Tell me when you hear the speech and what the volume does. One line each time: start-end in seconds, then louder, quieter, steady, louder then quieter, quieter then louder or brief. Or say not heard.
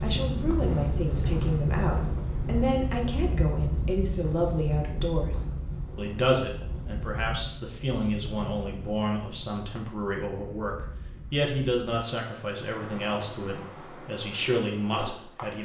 0.0-15.5 steady.